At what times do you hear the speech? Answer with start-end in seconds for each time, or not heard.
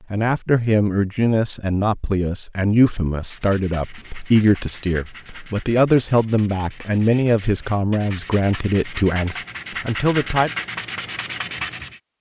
0.1-10.5.